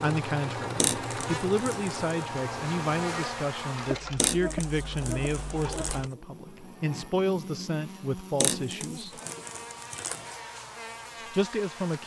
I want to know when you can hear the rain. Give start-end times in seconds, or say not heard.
not heard.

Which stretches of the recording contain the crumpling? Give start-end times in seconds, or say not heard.
0.8-1.9, 4.2-6.0, 8.4-10.3.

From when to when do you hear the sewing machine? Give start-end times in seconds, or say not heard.
0.0-6.1.